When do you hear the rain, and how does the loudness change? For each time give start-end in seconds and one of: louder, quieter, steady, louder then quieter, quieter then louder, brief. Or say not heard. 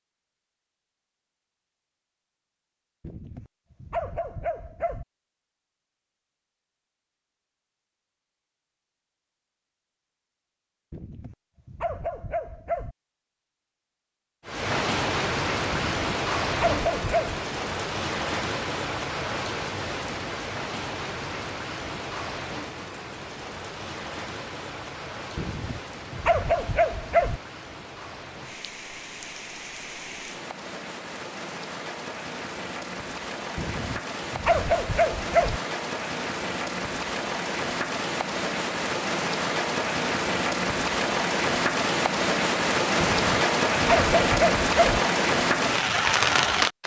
14.4-46.8 quieter then louder.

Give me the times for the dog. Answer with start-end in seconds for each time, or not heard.
3.0-5.0, 10.9-12.9, 15.7-17.4, 25.4-27.4, 33.5-35.6, 43.0-45.0.